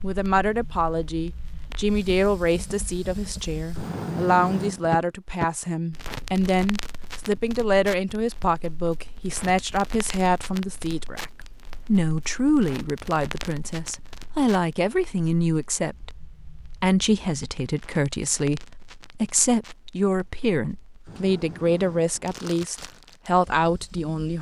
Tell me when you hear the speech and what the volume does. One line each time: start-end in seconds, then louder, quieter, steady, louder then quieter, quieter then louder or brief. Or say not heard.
0.0-24.3 steady.